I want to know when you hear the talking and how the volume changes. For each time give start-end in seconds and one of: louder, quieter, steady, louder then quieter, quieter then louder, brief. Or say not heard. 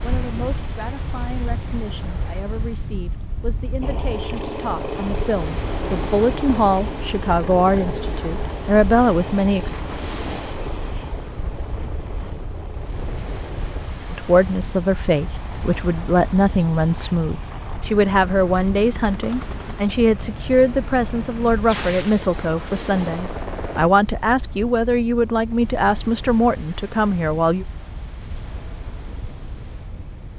0.0-9.7 louder
14.1-27.6 steady.